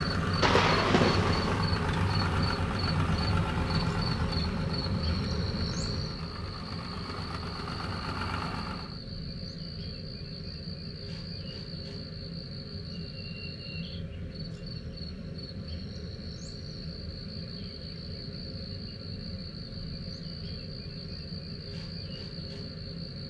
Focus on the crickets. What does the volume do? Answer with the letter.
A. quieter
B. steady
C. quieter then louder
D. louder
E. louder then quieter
A.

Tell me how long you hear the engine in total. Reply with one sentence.
The engine can be heard for 9 seconds in total.